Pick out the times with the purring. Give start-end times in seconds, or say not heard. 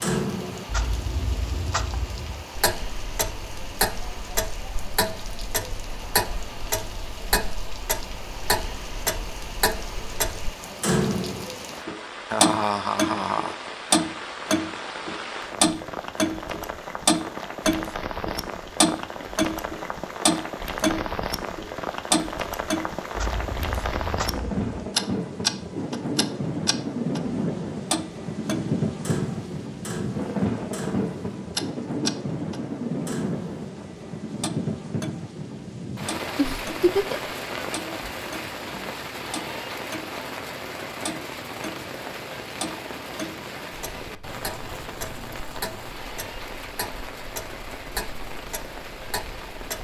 not heard.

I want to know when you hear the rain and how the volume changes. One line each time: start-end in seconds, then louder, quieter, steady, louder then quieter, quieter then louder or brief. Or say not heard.
0.0-49.7 louder then quieter.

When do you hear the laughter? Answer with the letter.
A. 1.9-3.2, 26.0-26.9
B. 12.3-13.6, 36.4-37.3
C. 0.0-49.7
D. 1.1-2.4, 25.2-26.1
B.